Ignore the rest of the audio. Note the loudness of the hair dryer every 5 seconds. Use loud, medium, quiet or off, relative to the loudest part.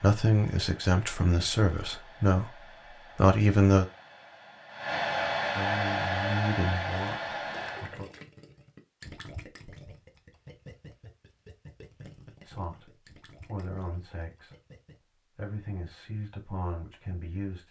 quiet, loud, off, off.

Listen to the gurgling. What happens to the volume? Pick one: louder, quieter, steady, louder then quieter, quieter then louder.
quieter.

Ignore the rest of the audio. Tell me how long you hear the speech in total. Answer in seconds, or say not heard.
11 s.